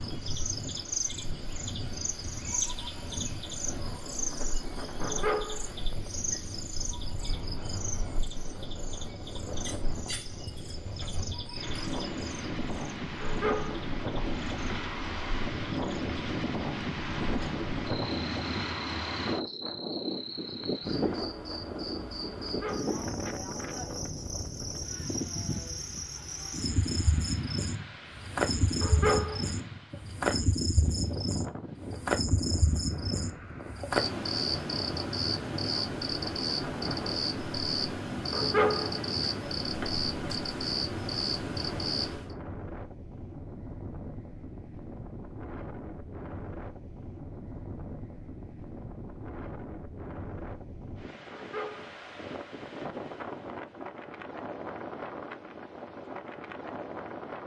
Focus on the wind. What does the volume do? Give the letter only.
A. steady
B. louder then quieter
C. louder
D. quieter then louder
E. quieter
B.